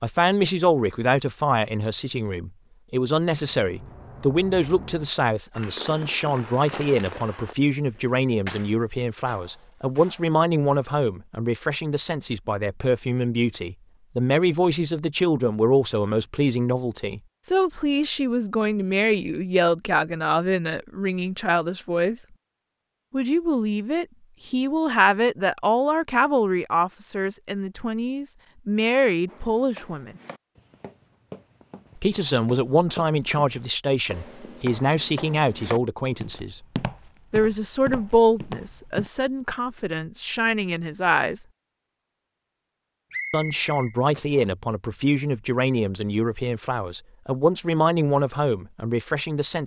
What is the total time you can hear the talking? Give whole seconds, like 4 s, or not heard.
44 s.